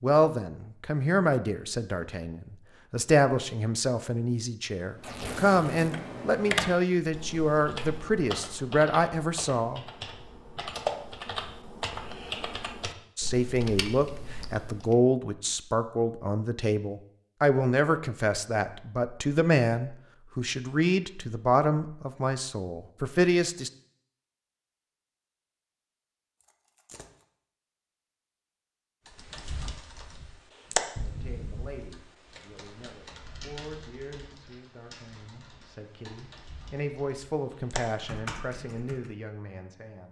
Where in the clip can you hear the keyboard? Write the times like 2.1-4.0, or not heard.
5.0-14.9, 29.1-39.1.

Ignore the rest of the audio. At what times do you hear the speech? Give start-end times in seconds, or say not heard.
0.0-9.8, 13.2-23.7, 31.0-40.0.